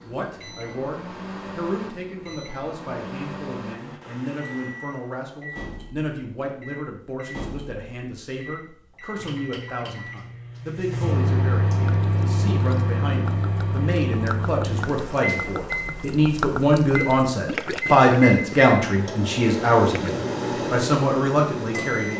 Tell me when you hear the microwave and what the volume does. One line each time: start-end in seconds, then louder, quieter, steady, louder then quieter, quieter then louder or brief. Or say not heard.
0.0-22.1 louder.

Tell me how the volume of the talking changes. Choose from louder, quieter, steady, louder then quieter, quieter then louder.
louder.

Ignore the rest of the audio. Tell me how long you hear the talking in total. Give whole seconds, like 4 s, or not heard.
22 s.